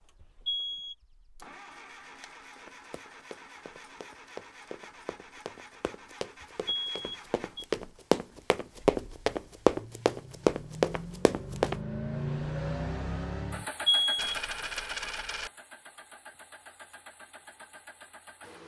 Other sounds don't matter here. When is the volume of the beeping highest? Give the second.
14 s.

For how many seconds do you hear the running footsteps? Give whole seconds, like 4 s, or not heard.
9 s.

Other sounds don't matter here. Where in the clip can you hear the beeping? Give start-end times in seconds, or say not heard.
0.2-0.9, 6.4-7.7, 13.8-14.3.